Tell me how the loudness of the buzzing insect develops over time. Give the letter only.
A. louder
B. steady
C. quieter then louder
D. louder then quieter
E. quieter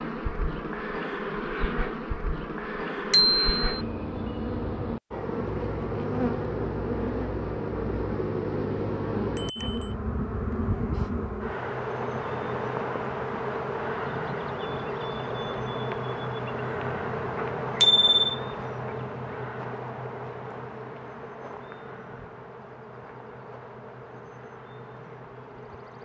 E.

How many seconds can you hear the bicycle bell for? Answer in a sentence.
You can hear the bicycle bell for 2 seconds altogether.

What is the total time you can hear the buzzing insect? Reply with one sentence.
The buzzing insect can be heard for 26 seconds in total.